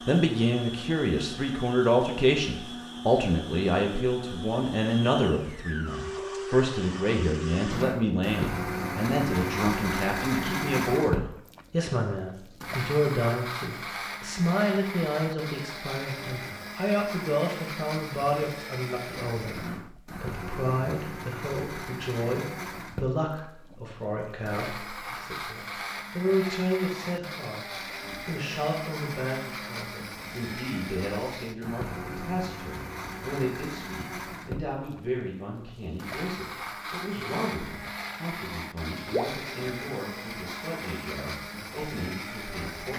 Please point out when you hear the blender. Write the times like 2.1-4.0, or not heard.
0.0-42.9.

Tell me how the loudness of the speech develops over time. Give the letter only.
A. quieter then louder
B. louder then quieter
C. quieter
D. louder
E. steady
C.